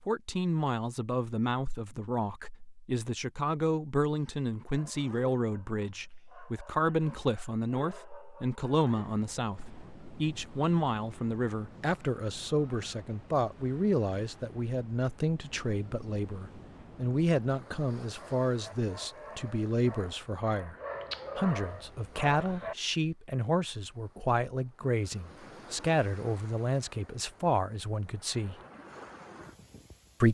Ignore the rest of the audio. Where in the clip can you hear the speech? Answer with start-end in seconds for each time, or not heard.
0.1-20.8, 21.4-28.6.